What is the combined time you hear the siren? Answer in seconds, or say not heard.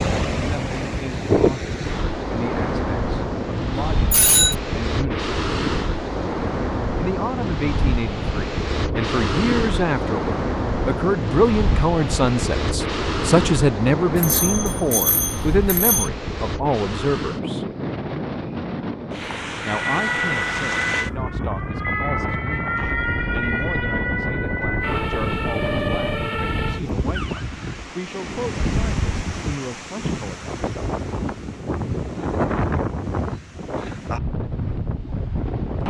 8 s.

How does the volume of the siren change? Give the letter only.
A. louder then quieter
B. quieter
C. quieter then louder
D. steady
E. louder
D.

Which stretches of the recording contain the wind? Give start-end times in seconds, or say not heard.
0.0-35.8.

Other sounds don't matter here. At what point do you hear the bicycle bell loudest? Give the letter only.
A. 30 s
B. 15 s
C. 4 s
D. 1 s
C.